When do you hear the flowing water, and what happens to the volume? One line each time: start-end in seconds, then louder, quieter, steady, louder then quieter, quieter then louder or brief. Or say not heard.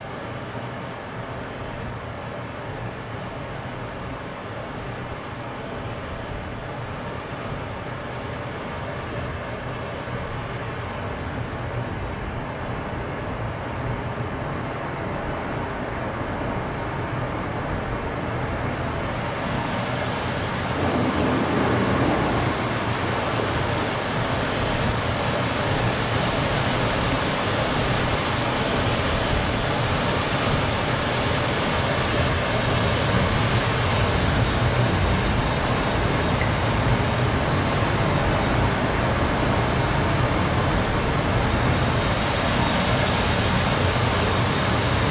0.0-45.0 louder.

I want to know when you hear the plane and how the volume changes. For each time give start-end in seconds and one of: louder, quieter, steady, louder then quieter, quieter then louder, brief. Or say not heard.
20.8-22.6 brief
32.5-45.0 steady.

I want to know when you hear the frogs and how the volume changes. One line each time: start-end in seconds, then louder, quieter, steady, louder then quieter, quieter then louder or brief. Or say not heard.
not heard.